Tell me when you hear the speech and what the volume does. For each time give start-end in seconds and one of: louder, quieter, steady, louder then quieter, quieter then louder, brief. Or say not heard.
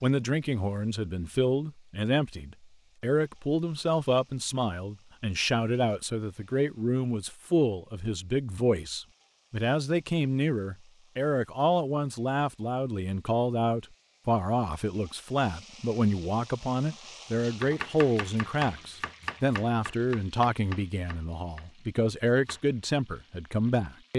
0.0-24.1 steady.